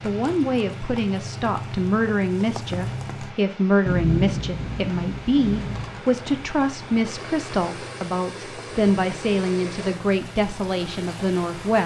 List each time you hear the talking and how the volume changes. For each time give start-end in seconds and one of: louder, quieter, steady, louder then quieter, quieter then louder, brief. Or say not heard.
0.0-11.8 steady.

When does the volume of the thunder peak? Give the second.
4 s.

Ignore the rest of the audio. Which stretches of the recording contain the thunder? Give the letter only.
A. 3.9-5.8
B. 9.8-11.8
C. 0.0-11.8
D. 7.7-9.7
A.